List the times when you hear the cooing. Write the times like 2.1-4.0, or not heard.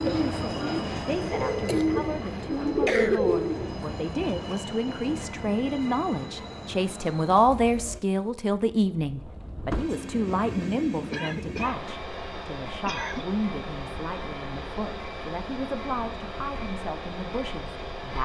0.0-3.9.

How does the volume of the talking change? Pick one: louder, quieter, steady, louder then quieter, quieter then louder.
louder then quieter.